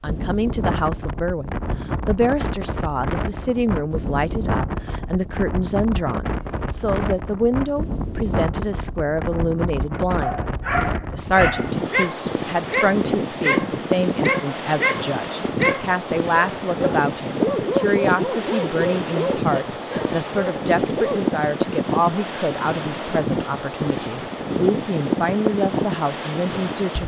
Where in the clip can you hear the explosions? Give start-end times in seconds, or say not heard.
not heard.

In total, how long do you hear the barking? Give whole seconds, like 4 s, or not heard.
11 s.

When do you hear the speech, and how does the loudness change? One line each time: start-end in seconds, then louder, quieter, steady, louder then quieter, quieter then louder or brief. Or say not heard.
0.0-10.4 steady
11.1-27.0 steady.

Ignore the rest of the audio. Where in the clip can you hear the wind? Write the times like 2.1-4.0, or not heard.
0.1-27.0.